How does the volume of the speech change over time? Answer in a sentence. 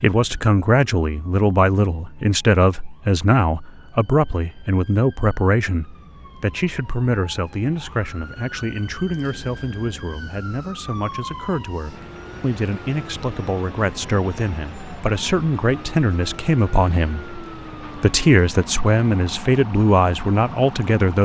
The loudness of the speech goes down, then up.